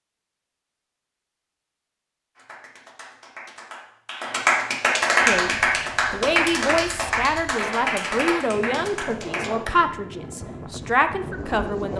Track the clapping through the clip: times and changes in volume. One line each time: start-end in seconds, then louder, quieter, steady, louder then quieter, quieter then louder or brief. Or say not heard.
2.4-9.8 louder then quieter.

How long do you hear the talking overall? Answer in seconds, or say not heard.
7 s.